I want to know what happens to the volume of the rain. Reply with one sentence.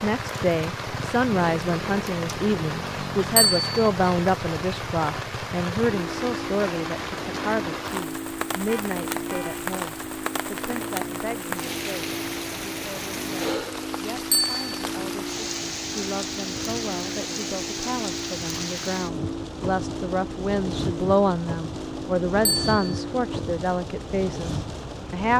The loudness of the rain stays about the same.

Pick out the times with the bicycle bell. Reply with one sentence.
The bicycle bell can be heard from 3.4 to 3.9 s, from 14.3 to 14.8 s and from 22.4 to 23.0 s.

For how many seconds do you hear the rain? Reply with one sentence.
You can hear the rain for 25 seconds altogether.